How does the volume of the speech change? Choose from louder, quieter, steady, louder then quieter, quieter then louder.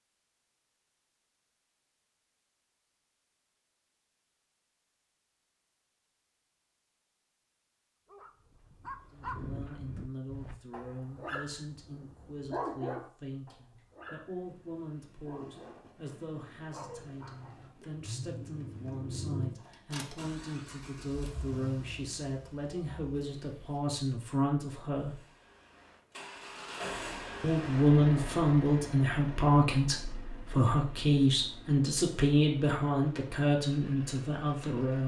louder.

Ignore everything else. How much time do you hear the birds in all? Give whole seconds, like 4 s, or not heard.
not heard.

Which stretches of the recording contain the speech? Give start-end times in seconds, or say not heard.
9.1-25.1, 27.4-35.0.